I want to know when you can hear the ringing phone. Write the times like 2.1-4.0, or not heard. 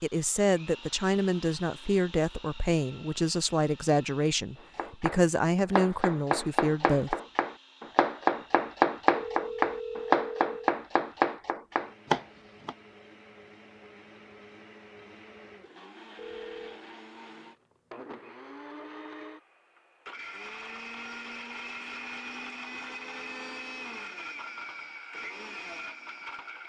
9.1-10.6, 16.1-16.8.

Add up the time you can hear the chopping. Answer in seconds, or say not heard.
8 s.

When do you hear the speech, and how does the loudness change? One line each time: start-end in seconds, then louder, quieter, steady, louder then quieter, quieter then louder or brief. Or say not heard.
0.0-7.2 steady.